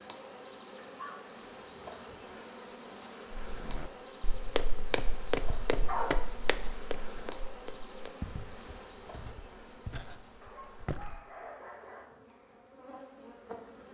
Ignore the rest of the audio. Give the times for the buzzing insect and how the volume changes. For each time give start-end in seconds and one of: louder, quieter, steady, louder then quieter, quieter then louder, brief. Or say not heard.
0.0-13.8 quieter.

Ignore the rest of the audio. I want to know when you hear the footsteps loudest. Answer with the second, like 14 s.
5 s.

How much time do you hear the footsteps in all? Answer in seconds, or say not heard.
8 s.